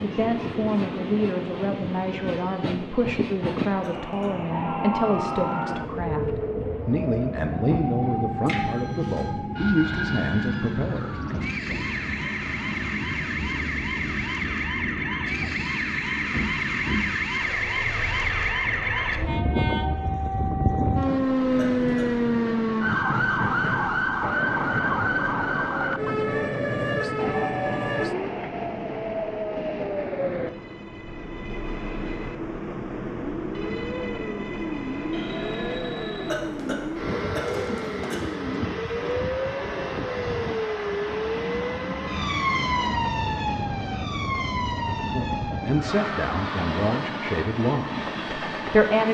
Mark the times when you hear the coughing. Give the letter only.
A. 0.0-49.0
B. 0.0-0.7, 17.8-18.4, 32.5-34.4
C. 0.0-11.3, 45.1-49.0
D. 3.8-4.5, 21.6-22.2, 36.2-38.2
D.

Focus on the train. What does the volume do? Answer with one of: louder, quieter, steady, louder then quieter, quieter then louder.
steady.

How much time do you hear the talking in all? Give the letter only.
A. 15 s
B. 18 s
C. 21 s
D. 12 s
A.